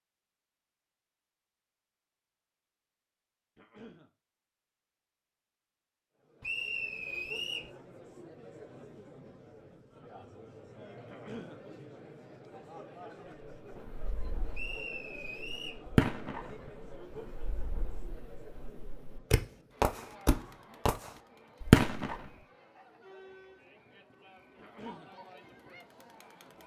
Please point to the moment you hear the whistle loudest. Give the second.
7 s.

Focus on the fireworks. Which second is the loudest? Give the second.
22 s.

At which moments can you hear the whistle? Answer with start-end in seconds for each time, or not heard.
6.4-7.7, 14.5-15.8.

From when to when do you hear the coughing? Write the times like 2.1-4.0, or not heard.
3.5-4.1, 11.1-11.6, 24.6-25.1.